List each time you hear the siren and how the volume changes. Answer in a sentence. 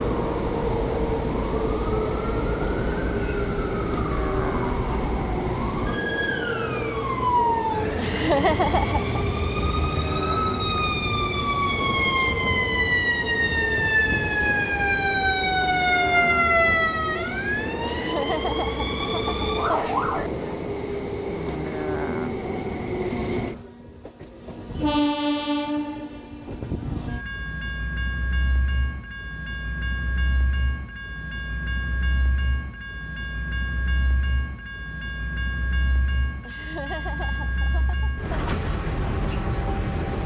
The siren can be heard from 0.0 to 20.3 s, getting louder.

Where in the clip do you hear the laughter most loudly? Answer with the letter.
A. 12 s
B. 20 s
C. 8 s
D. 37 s
C.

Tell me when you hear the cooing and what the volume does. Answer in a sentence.
The cooing can't be heard in this clip.